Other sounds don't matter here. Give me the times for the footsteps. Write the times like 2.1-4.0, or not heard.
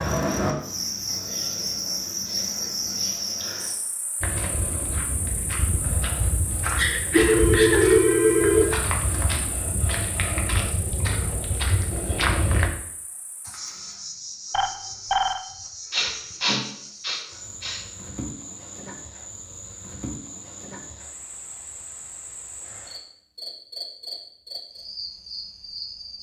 4.2-12.7.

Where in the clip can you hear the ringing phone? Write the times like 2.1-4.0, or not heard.
7.2-8.8, 14.5-15.4.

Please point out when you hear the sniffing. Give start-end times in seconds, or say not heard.
6.7-8.8, 15.9-17.9.